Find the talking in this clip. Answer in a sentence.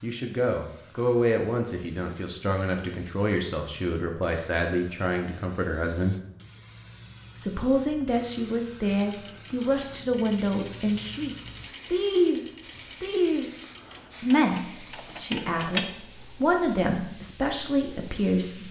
You can hear the talking from 0.0 to 6.2 s, from 7.3 to 13.6 s and from 14.2 to 18.6 s.